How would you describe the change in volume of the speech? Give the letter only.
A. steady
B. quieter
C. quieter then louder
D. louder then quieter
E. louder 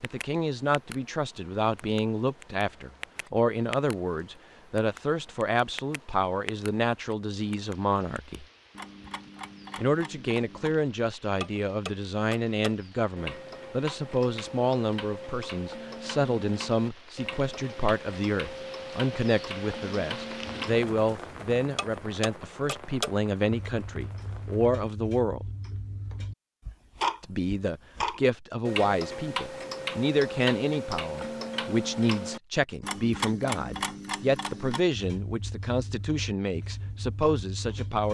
A.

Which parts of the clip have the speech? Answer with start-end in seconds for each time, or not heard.
0.0-8.4, 9.8-25.4, 27.2-38.0.